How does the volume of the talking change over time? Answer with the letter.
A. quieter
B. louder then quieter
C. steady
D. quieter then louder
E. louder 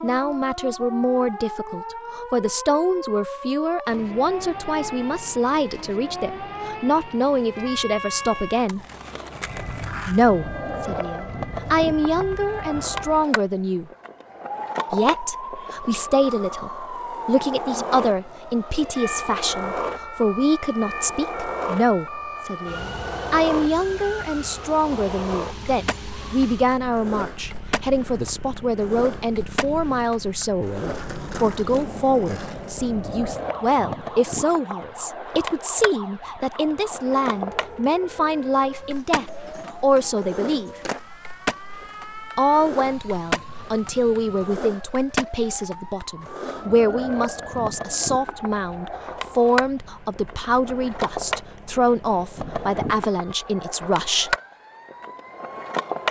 C.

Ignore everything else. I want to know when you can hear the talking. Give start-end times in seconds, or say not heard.
0.0-8.8, 10.1-13.9, 14.9-40.9, 42.4-54.4.